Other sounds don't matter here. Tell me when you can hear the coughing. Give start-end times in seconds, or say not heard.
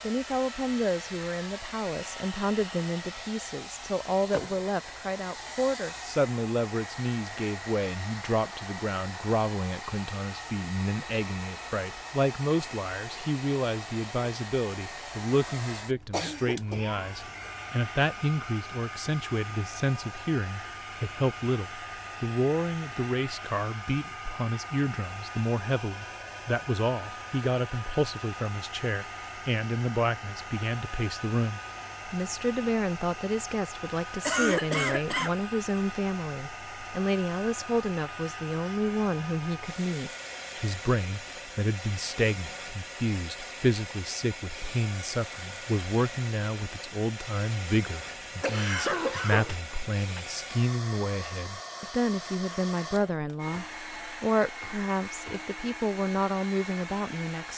15.9-17.5, 34.2-35.4, 48.4-50.2.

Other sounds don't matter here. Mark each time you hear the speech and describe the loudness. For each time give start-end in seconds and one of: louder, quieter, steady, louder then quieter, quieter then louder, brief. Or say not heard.
0.0-57.5 steady.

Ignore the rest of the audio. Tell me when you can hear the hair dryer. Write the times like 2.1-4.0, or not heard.
0.0-57.5.